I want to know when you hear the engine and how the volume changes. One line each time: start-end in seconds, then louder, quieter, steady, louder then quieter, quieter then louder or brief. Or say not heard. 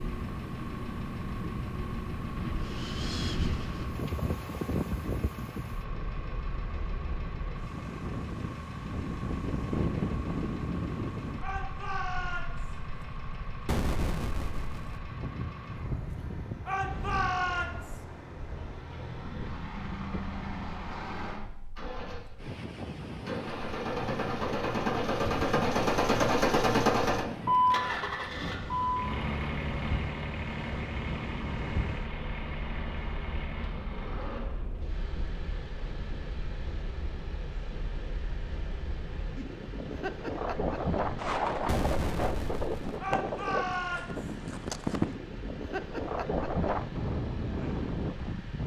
0.0-48.6 louder then quieter.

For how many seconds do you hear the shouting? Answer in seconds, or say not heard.
4 s.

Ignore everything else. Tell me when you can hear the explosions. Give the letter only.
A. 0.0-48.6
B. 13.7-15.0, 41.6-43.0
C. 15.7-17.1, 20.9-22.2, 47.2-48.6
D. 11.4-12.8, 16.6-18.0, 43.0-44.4
B.